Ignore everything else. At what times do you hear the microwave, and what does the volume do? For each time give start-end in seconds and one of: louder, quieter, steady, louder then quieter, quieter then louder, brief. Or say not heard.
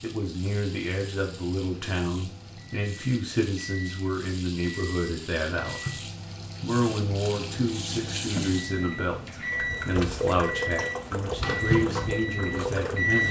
0.1-13.2 louder.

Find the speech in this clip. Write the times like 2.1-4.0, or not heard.
0.0-5.9, 6.6-13.2.